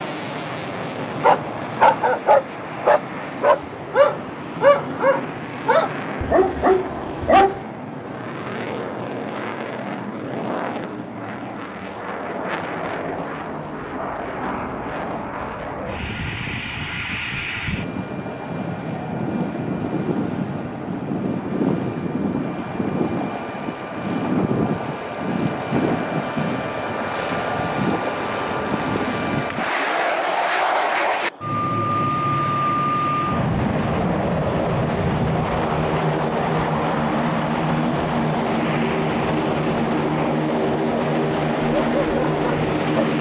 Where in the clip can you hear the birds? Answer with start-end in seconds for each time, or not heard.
not heard.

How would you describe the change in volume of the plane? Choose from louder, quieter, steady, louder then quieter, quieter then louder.
louder.